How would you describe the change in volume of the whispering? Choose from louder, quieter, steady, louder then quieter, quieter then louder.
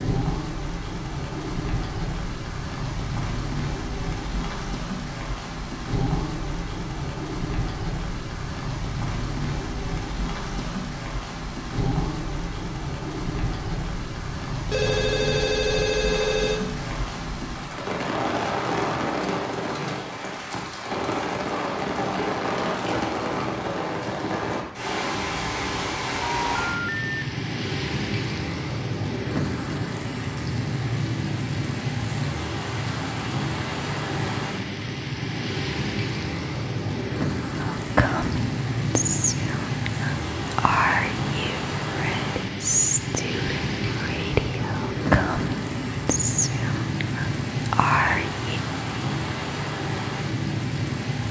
steady.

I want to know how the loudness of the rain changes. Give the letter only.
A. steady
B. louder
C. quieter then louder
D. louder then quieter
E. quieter
A.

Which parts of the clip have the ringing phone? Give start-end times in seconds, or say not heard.
14.7-16.7, 26.2-27.1.